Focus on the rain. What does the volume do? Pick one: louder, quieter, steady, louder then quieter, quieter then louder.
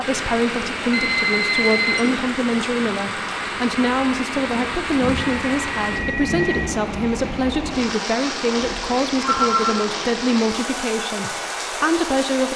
steady.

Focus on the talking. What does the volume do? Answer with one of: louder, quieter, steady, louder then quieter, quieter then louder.
steady.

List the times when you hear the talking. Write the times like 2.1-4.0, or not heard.
0.0-12.5.